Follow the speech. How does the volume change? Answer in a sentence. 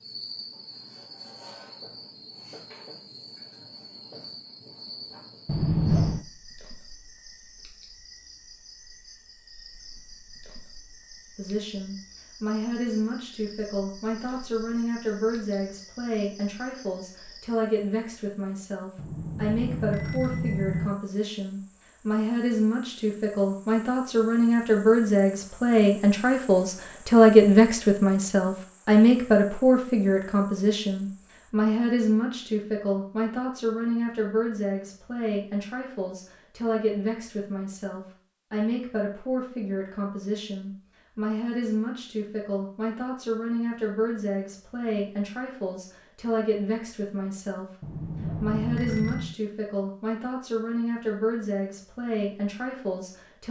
The loudness of the speech goes up, then down.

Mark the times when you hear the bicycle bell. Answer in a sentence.
The bicycle bell can be heard from 5.5 to 6.2 s, from 18.9 to 20.9 s and from 47.8 to 49.4 s.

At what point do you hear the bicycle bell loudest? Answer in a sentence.
The volume of the bicycle bell peaks at 6 seconds.